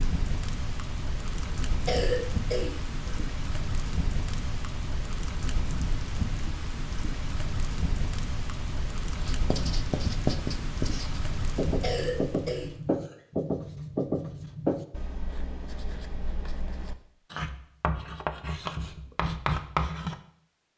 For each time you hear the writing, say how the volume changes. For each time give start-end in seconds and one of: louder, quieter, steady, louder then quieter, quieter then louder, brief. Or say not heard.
9.2-20.2 quieter then louder.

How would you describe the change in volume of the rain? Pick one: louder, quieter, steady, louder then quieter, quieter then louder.
steady.